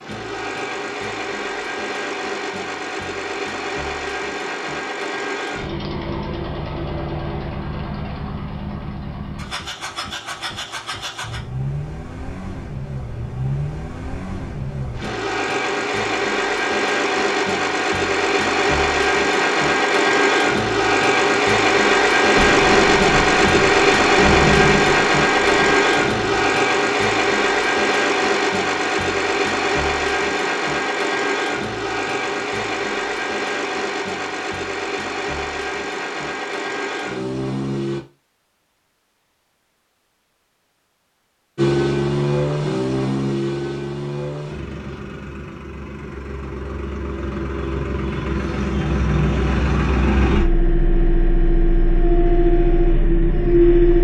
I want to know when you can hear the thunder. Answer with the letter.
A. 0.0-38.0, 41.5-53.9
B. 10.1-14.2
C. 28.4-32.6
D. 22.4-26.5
D.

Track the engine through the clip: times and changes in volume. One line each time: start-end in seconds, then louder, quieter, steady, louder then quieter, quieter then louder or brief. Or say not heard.
0.0-38.0 louder then quieter
41.5-53.9 quieter then louder.